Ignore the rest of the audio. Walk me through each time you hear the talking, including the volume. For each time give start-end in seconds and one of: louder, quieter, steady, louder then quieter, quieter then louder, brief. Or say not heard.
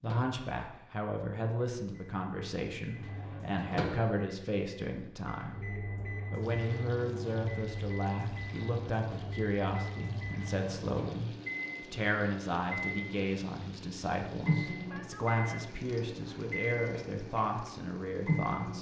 0.0-18.7 steady.